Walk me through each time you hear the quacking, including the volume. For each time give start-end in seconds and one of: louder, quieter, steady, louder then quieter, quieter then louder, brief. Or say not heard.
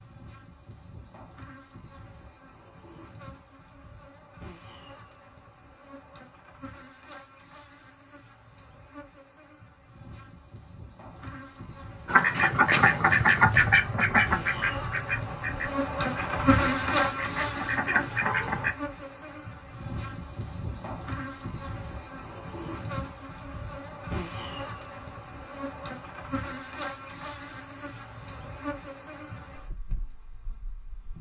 12.1-18.8 quieter then louder.